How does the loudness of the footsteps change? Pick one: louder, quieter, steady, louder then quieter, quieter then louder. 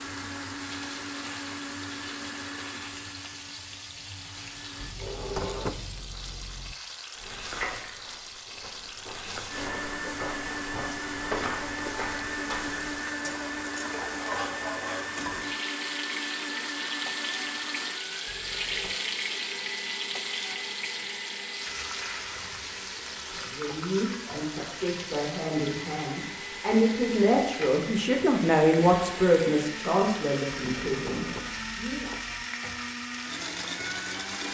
quieter then louder.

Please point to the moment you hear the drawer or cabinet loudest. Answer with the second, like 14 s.
6 s.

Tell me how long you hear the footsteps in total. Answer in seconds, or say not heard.
6 s.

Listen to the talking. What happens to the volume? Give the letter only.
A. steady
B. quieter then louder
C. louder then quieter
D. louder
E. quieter
C.